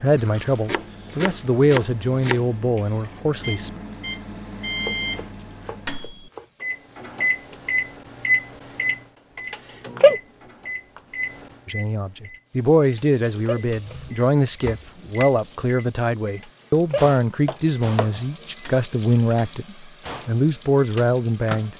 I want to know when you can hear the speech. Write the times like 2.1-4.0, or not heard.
0.0-3.7, 11.7-21.7.